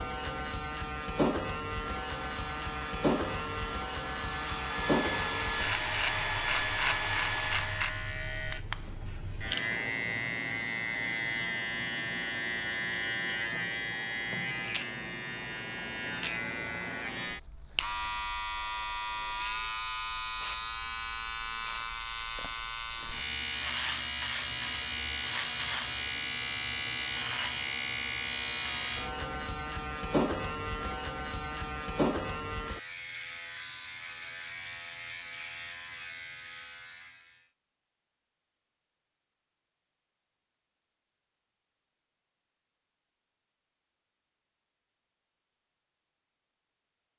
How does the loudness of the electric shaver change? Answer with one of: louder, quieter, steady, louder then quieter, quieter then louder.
steady.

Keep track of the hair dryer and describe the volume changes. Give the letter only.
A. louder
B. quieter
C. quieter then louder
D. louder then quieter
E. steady
A.